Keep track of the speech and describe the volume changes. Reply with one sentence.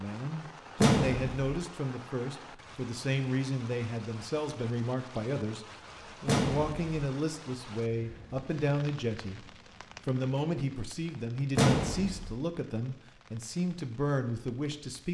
The volume of the speech stays about the same.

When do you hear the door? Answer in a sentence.
The door can be heard from 0.8 to 1.6 s, from 6.2 to 7.0 s and from 11.6 to 12.3 s.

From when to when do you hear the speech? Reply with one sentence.
The speech can be heard from 0.0 to 15.0 s.